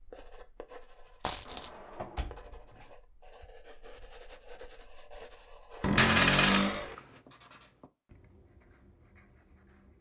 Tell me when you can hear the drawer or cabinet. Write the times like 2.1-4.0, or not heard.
1.4-2.9, 5.8-7.0.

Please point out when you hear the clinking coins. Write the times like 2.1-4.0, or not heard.
1.2-1.7, 6.0-7.0.